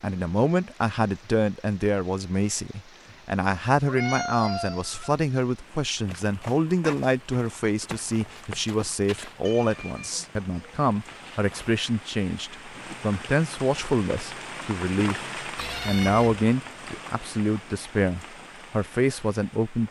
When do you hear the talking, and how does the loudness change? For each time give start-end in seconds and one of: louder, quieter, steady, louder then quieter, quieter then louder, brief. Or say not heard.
0.0-19.8 steady.